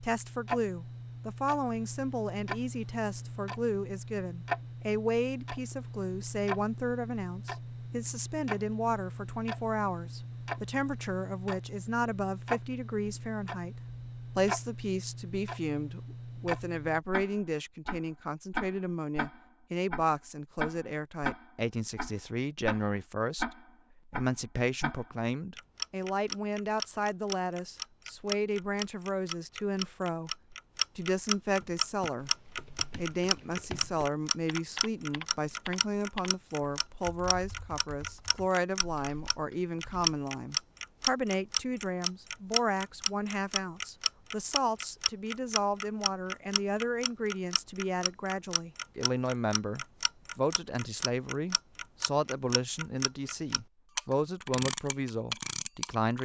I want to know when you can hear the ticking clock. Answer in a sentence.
The ticking clock can be heard from 0.0 to 56.2 s.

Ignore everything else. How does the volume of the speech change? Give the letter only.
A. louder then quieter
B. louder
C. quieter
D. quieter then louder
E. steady
E.